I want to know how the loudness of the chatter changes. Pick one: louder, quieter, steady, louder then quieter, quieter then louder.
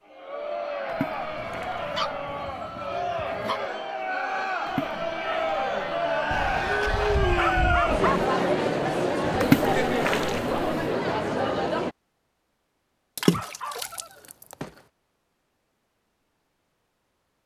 louder.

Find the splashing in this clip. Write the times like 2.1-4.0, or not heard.
0.8-2.5, 4.7-6.5, 9.4-10.9, 13.2-14.6.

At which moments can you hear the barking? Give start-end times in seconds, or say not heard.
1.4-3.6, 6.3-8.2, 13.3-14.8.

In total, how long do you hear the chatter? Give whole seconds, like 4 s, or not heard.
12 s.